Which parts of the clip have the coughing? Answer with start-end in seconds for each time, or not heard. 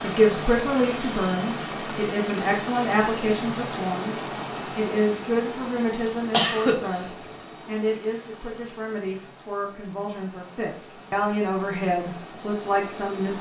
5.8-7.1.